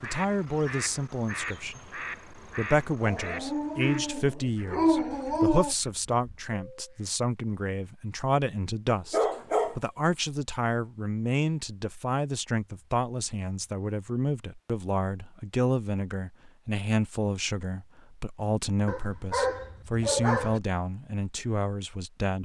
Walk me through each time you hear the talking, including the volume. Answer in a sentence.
The talking can be heard from 0.0 to 22.3 s, at a steady volume.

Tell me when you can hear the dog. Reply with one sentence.
You can hear the dog from 3.0 to 5.8 s, from 8.9 to 9.8 s and from 18.9 to 20.6 s.